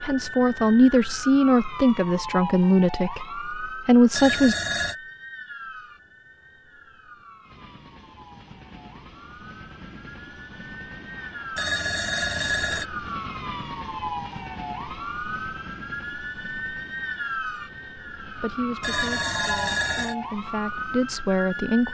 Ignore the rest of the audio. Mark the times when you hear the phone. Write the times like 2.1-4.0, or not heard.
4.1-5.0, 11.6-12.8, 18.8-20.1.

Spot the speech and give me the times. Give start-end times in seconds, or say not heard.
0.0-4.5, 18.4-21.8.